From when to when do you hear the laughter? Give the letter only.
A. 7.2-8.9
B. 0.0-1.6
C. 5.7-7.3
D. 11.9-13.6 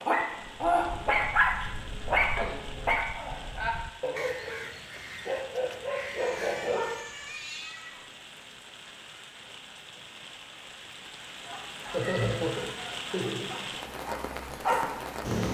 D.